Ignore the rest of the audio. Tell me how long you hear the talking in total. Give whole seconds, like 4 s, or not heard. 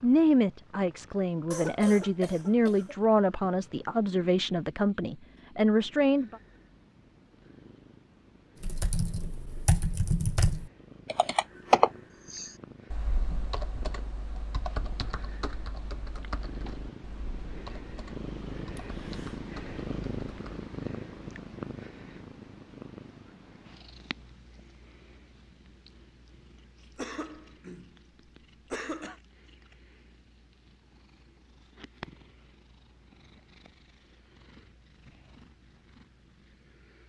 6 s.